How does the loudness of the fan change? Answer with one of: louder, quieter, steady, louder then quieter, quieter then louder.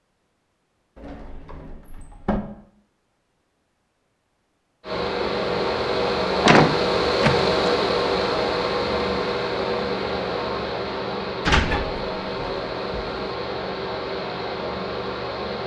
quieter.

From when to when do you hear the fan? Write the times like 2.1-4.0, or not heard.
4.8-15.6.